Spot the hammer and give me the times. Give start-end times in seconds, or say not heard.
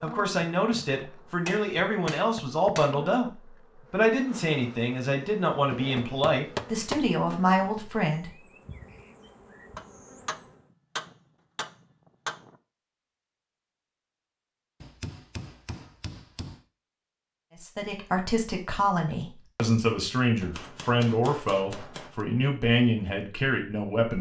1.4-3.0, 5.7-7.2, 9.8-12.6, 14.8-16.6, 20.4-22.2.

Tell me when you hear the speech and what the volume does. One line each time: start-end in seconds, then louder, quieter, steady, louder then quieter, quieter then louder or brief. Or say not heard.
0.0-8.3 steady
17.6-24.1 steady.